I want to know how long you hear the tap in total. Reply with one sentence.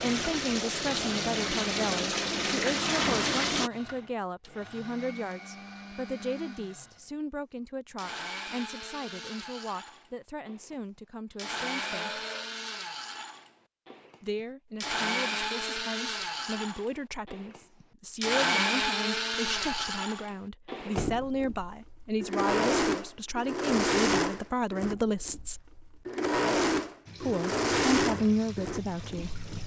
The tap can be heard for 6 seconds in total.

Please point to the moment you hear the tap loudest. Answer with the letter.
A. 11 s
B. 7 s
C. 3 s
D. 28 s
C.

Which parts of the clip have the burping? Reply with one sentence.
The burping can be heard from 11.3 to 12.5 s.